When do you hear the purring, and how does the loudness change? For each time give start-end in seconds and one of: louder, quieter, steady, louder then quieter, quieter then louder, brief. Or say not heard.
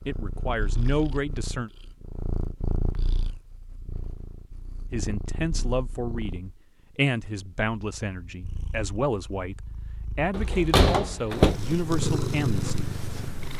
0.0-13.5 quieter then louder.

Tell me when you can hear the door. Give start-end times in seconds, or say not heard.
10.3-11.6.